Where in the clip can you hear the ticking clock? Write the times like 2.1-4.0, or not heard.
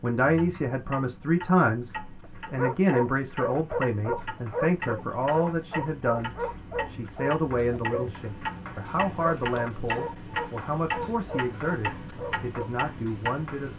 0.1-13.7.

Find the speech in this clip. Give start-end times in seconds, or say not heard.
0.0-13.7.